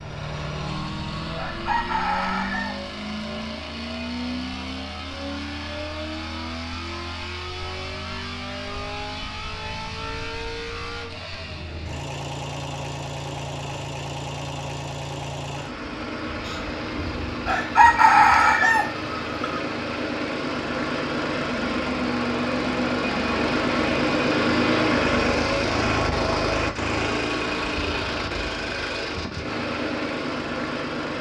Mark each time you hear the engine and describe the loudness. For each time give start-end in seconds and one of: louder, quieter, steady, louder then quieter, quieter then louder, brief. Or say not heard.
0.0-31.1 louder.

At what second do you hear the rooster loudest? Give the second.
18 s.